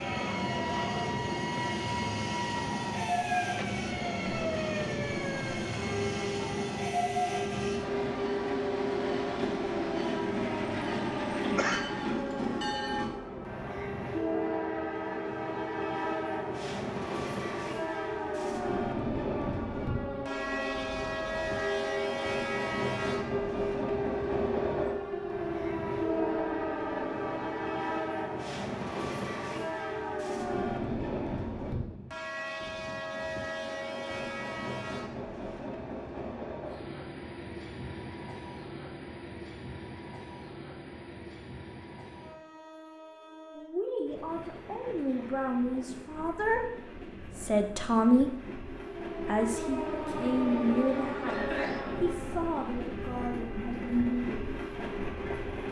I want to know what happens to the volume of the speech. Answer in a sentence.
The loudness of the speech goes up, then down.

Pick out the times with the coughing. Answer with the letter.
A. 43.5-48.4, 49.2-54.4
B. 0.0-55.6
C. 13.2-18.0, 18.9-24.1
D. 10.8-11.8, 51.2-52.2
D.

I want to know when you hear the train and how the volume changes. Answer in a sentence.
The train can be heard from 0.0 to 55.6 s, getting quieter.